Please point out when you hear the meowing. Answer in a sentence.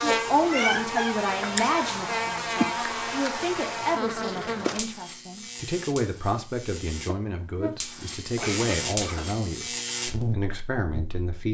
You can hear the meowing from 0.3 to 1.6 s.